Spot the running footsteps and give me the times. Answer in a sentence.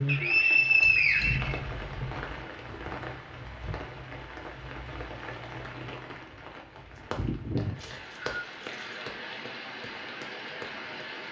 You can hear the running footsteps from 7.1 to 11.1 s.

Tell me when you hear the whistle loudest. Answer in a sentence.
The volume of the whistle peaks at 1 second.